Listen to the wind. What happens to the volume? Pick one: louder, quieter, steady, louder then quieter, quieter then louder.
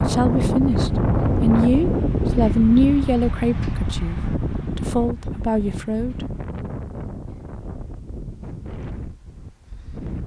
quieter.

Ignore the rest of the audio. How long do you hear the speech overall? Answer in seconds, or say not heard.
6 s.